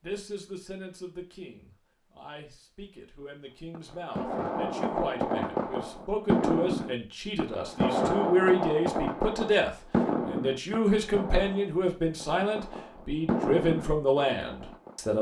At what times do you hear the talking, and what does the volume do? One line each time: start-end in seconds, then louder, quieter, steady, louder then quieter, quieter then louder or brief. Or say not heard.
0.0-15.1 louder.